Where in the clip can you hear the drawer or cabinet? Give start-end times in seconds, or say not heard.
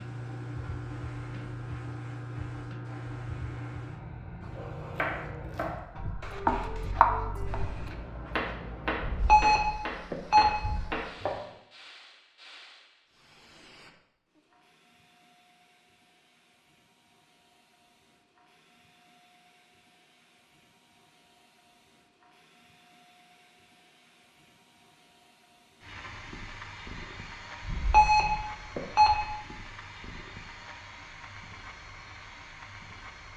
not heard.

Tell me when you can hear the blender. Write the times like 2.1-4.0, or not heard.
not heard.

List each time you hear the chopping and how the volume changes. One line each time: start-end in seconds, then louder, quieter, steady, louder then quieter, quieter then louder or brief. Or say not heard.
5.0-11.4 quieter.